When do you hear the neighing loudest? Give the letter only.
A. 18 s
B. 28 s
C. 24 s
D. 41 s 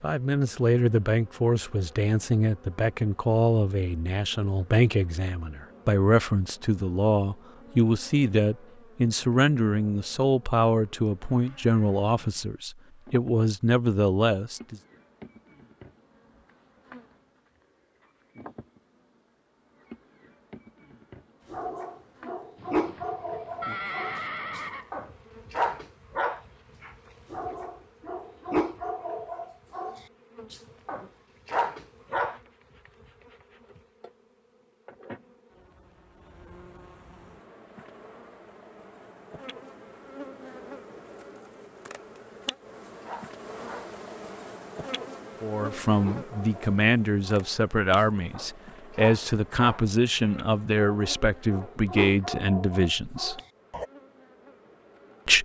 C.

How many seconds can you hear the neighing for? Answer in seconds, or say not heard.
2 s.